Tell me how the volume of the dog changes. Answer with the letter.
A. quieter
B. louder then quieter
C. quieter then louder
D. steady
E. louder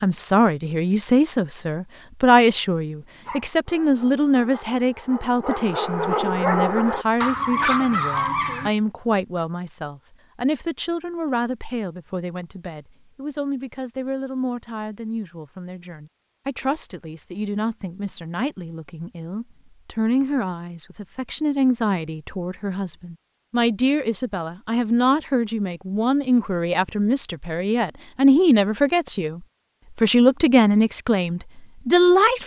E.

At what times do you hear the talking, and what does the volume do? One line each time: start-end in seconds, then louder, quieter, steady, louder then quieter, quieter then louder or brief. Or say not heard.
0.0-32.4 quieter then louder.